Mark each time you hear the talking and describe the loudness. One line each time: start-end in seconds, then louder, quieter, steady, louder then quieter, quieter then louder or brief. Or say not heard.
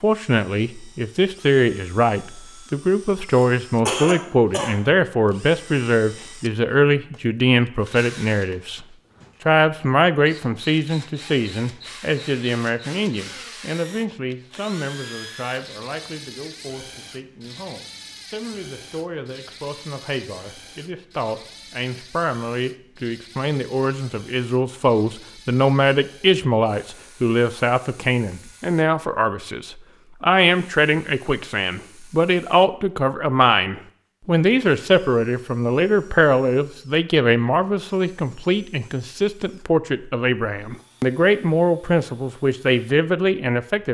0.0-8.8 steady
9.4-43.9 quieter then louder.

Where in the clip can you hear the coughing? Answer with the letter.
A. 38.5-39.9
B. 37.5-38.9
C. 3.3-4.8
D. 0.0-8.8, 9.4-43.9
C.